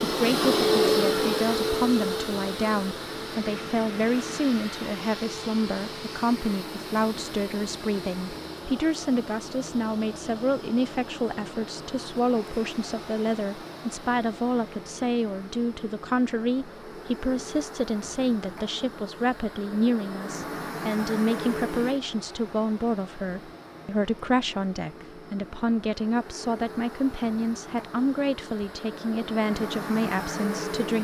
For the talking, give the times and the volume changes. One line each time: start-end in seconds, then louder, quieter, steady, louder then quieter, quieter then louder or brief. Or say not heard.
0.0-30.9 steady.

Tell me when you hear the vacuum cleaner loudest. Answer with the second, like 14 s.
1 s.